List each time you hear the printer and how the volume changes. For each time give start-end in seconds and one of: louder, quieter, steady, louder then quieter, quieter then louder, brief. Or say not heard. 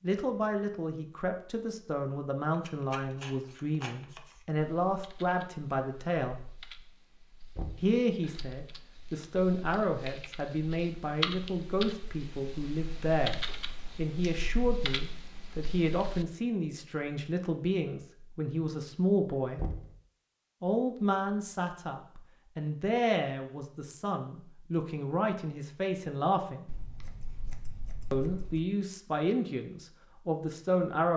not heard.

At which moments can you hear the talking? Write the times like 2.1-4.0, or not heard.
0.0-6.3, 7.8-19.6, 20.6-26.7, 28.1-31.1.